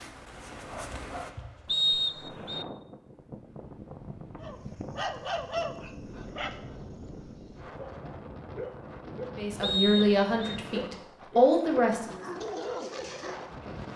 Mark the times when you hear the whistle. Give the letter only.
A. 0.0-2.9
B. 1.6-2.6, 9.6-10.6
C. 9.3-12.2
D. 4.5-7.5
B.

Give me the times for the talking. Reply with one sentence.
You can hear the talking from 9.3 to 12.2 s.